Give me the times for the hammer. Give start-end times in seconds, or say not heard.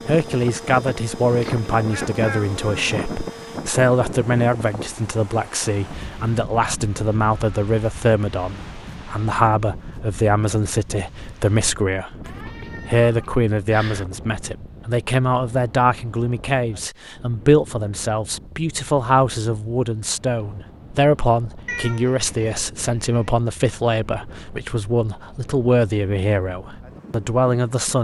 not heard.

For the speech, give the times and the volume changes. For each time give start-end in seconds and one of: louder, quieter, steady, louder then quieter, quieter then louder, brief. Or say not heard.
0.1-27.9 steady.